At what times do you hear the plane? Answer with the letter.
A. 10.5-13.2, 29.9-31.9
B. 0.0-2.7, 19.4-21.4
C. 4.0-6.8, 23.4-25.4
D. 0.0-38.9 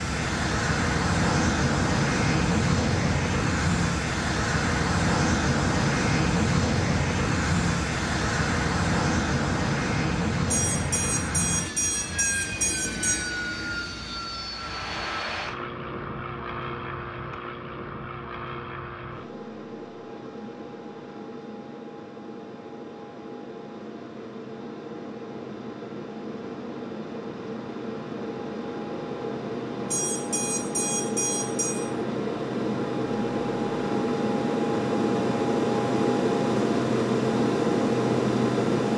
D.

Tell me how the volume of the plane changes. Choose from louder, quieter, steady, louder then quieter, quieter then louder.
quieter then louder.